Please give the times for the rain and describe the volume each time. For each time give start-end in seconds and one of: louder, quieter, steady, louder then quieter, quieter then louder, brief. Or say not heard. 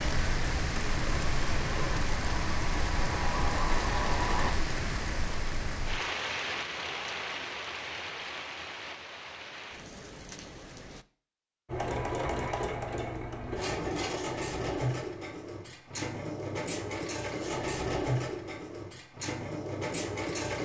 0.0-11.1 quieter.